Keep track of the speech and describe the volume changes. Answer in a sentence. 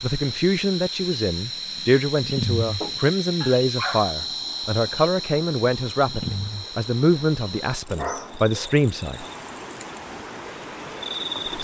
The loudness of the speech stays about the same.